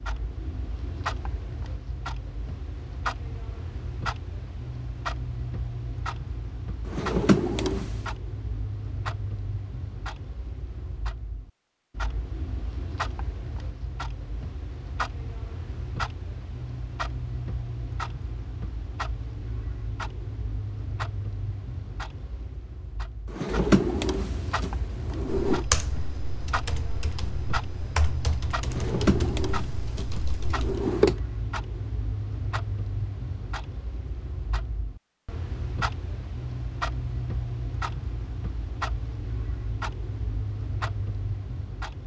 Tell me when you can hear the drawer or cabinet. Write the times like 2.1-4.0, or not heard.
6.8-8.0, 23.3-25.6, 28.6-31.2.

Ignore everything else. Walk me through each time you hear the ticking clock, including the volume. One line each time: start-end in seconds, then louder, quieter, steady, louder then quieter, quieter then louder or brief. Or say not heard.
0.0-42.0 steady.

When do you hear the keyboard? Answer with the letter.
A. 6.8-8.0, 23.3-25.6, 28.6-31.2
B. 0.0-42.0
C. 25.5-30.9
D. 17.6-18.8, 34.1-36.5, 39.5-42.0
C.